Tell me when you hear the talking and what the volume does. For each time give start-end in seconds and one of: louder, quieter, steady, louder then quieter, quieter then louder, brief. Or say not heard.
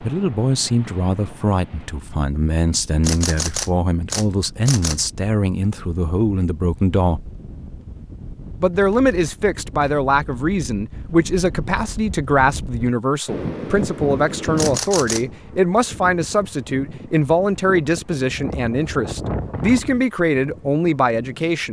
0.0-7.3 steady
8.6-21.6 steady.